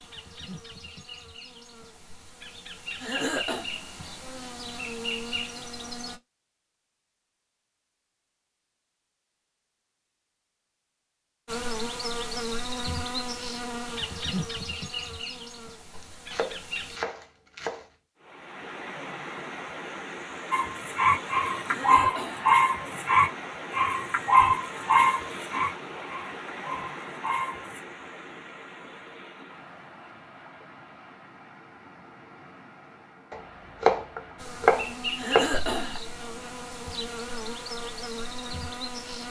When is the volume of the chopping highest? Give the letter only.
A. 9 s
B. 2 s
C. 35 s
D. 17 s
C.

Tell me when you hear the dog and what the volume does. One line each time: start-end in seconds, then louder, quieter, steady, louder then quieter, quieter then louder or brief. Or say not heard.
20.5-27.8 quieter.